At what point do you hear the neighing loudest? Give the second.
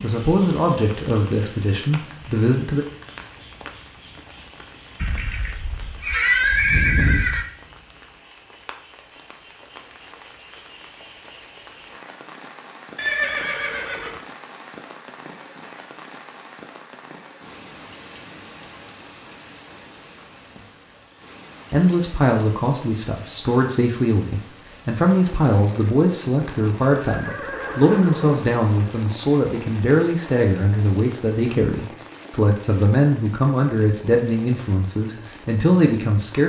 6 s.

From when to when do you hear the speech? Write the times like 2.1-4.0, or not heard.
0.0-2.9, 21.7-36.4.